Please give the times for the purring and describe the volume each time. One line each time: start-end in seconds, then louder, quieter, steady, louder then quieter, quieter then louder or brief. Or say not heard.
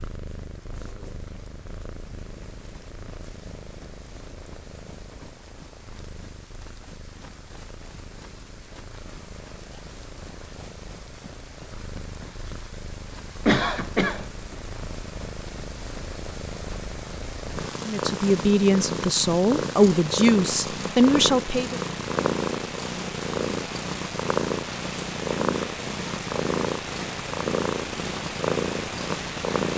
0.0-29.7 louder.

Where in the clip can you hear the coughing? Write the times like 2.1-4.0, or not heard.
13.4-14.2.